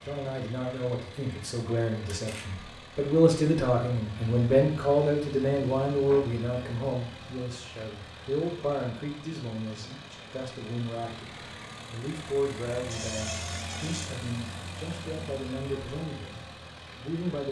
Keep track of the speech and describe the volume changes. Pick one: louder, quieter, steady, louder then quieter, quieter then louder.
quieter.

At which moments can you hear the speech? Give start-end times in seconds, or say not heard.
0.0-17.4.